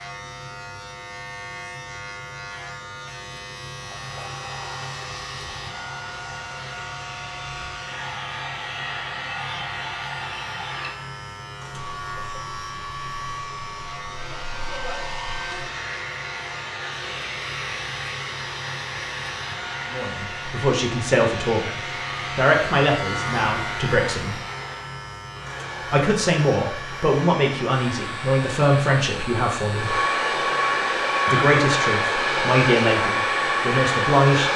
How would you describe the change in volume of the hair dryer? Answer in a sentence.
The volume of the hair dryer goes up.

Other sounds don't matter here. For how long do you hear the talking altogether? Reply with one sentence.
You can hear the talking for 12 seconds altogether.